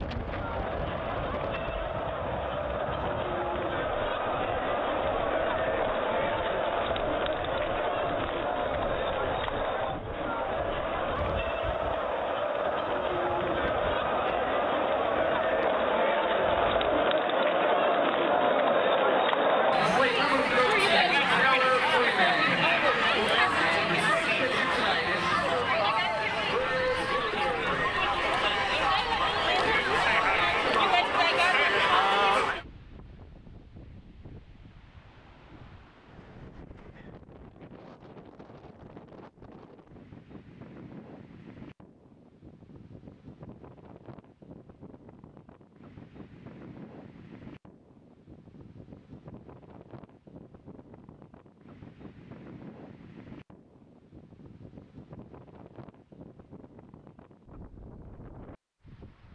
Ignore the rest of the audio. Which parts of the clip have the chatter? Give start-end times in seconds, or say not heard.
0.0-32.6.